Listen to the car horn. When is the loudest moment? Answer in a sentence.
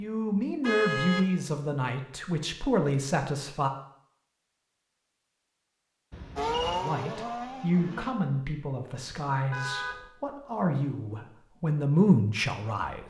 The loudest moment of the car horn is at 1 second.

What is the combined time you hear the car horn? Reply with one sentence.
You can hear the car horn for 2 seconds altogether.